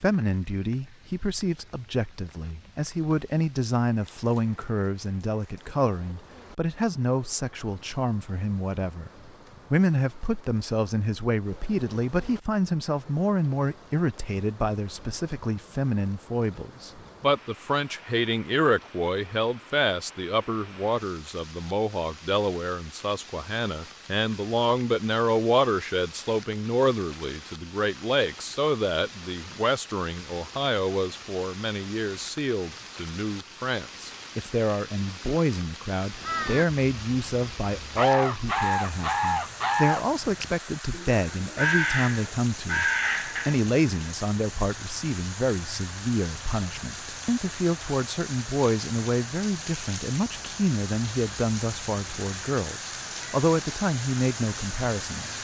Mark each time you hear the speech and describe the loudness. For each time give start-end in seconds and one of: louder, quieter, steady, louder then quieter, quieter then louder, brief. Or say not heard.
0.0-55.3 steady.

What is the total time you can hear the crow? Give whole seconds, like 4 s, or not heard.
7 s.